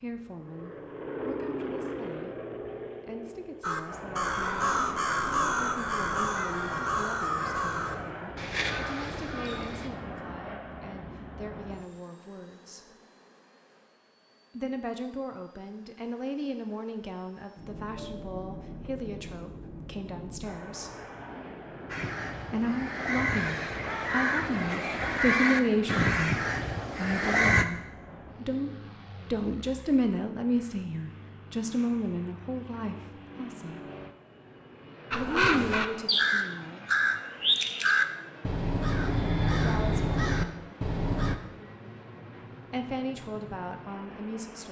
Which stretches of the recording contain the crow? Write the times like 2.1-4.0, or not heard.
3.6-9.9, 21.9-27.6, 35.1-41.4.